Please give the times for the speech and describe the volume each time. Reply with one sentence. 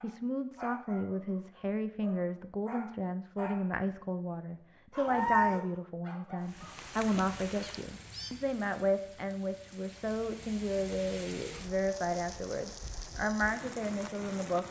The speech can be heard from 0.0 to 14.6 s, at a steady volume.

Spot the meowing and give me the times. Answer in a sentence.
You can hear the meowing from 5.0 to 5.6 s and from 7.6 to 8.3 s.